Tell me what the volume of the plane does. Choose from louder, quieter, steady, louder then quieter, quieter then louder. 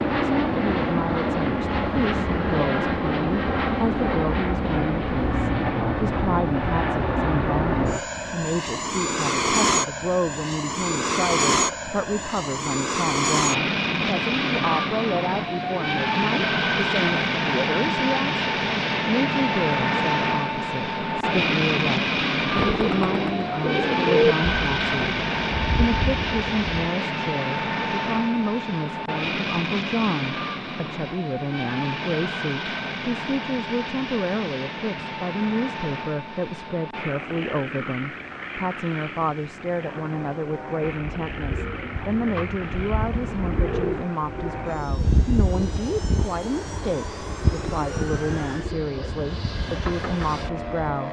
quieter.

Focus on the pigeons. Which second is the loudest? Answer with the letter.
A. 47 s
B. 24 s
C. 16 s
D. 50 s
B.